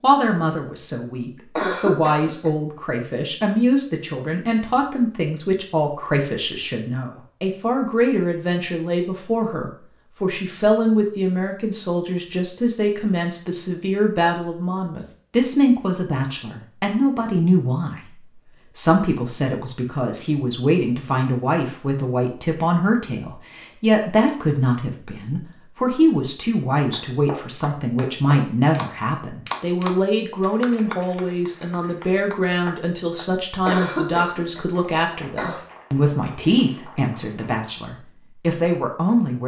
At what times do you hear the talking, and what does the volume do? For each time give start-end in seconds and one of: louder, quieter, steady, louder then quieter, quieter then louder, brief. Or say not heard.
0.0-39.4 steady.